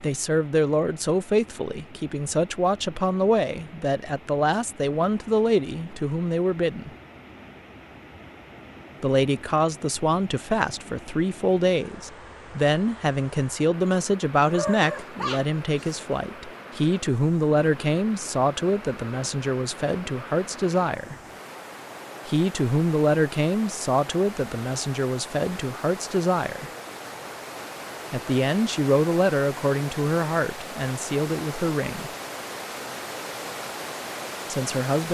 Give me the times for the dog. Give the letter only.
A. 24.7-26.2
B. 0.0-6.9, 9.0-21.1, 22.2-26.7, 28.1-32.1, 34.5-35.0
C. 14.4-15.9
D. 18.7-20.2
C.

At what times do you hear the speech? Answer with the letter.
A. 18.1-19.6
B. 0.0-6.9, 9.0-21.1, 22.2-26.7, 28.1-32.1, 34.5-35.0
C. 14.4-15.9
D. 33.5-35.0
B.